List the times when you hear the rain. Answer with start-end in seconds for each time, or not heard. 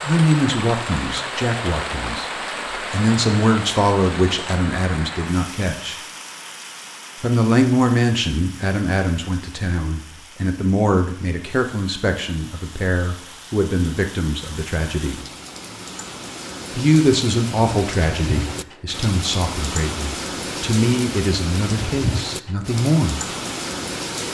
0.0-24.2.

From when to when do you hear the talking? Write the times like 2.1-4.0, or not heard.
0.1-6.0, 7.2-15.2, 16.7-23.2.